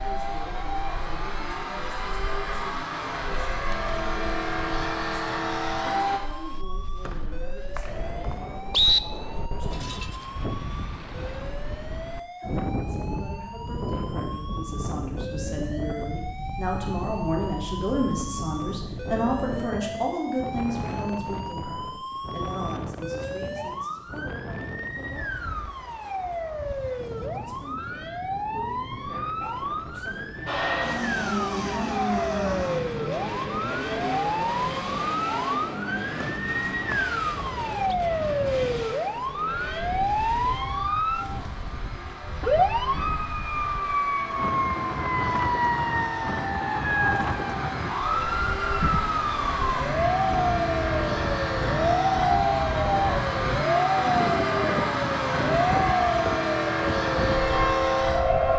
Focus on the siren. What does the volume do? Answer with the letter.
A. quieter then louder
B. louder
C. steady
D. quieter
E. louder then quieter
B.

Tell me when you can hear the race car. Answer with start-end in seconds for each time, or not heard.
0.0-6.2, 30.4-58.5.